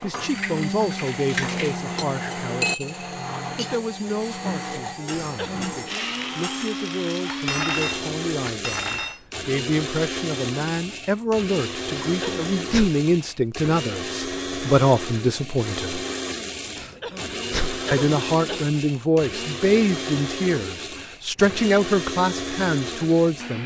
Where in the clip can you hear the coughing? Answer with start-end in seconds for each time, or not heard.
5.1-5.8, 11.9-12.9, 16.8-18.7.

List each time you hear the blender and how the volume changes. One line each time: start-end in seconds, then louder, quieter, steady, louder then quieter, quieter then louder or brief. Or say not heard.
0.1-23.6 steady.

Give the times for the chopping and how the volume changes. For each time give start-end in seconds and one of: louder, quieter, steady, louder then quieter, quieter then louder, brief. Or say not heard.
not heard.